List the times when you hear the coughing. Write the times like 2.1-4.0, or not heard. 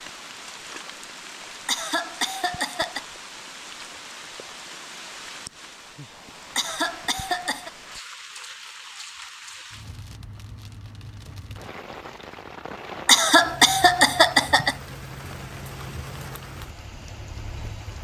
1.6-3.0, 6.5-7.7, 13.1-14.8.